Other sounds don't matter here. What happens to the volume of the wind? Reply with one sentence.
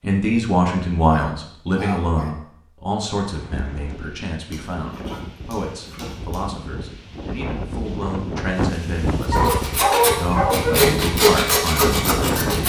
The loudness of the wind goes up.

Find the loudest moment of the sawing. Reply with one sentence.
The loudest moment of the sawing is at 11 seconds.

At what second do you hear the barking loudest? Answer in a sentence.
The loudest moment of the barking is at 10 seconds.